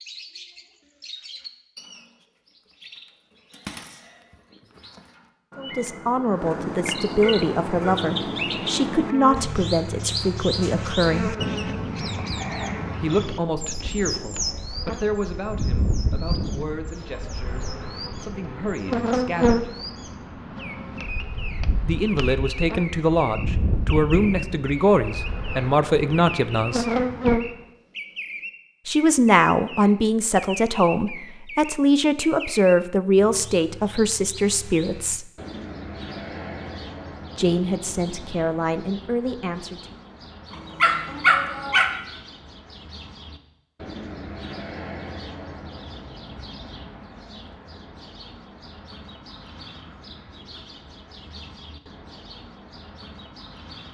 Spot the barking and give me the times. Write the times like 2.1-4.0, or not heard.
7.2-8.1, 40.8-41.9.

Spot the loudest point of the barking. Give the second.
41 s.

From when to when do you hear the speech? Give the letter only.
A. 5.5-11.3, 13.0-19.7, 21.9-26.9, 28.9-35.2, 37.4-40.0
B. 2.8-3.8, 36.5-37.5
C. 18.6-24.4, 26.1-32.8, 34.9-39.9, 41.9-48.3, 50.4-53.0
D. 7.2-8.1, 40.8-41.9
A.